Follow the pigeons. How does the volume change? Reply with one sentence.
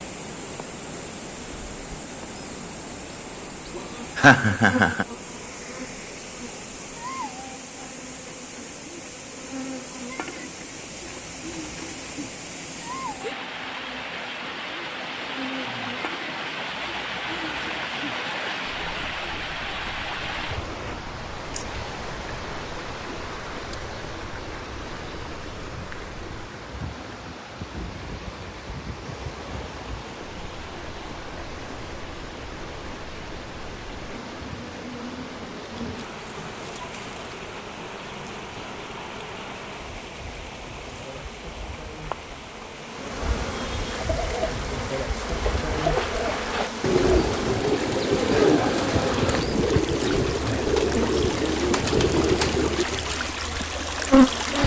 The loudness of the pigeons goes up.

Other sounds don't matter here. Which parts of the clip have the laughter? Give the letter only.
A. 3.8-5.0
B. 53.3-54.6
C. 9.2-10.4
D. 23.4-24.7
A.